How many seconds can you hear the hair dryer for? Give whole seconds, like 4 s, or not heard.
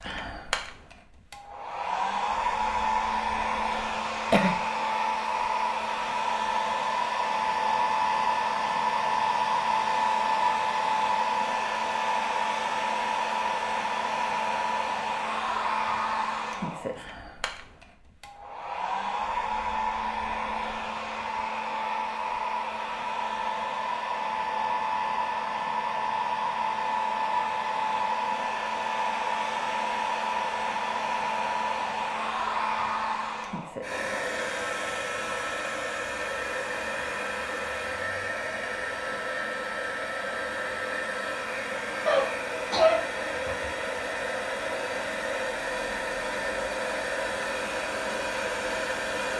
49 s.